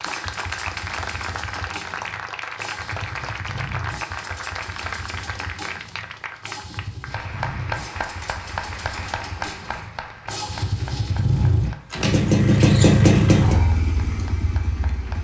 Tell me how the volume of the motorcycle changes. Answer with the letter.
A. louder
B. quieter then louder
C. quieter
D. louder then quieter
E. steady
A.